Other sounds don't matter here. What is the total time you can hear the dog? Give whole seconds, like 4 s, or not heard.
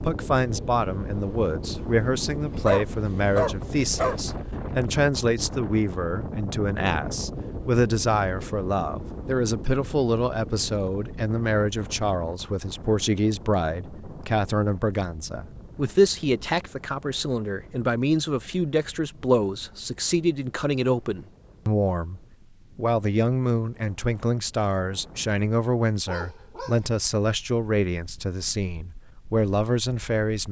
3 s.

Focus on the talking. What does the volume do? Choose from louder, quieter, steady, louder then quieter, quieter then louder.
steady.